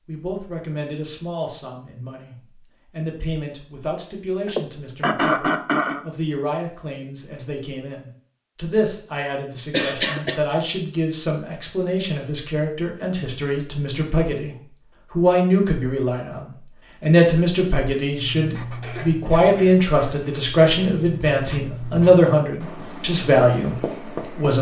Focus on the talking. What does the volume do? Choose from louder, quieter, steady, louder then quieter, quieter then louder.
louder.